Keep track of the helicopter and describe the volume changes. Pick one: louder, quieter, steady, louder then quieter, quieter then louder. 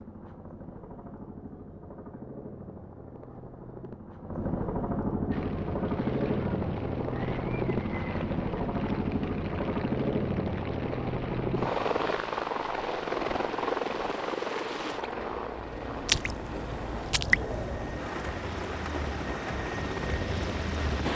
louder then quieter.